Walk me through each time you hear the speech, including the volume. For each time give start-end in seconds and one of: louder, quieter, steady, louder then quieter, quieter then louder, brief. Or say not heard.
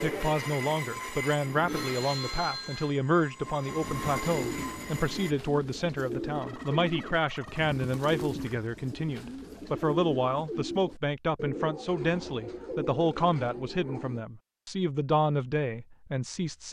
0.0-16.6 steady.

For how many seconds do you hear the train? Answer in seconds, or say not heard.
5 s.